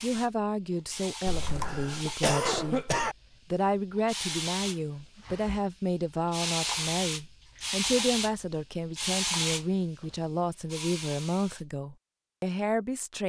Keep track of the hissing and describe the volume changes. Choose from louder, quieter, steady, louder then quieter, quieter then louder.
louder.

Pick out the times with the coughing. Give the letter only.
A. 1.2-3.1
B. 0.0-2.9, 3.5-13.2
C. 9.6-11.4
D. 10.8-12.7
A.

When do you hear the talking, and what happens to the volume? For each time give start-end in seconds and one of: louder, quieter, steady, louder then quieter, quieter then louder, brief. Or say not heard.
0.0-2.9 brief
3.5-13.2 steady.